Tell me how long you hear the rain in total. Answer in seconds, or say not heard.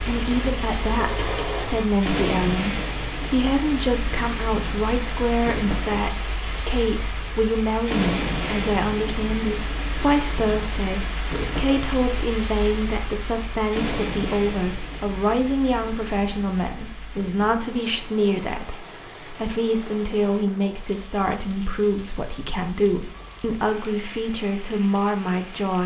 26 s.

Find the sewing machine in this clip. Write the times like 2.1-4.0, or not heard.
0.1-1.9.